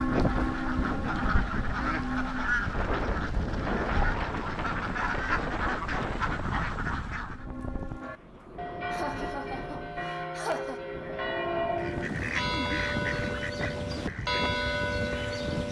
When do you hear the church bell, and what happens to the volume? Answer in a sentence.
You can hear the church bell briefly from 0.0 to 2.5 s; and from 7.3 to 15.6 s, getting louder.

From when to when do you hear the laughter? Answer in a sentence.
You can hear the laughter from 8.4 to 10.8 s.